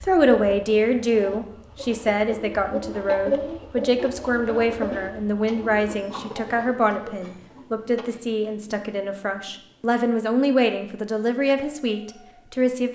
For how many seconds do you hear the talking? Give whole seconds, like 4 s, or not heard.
13 s.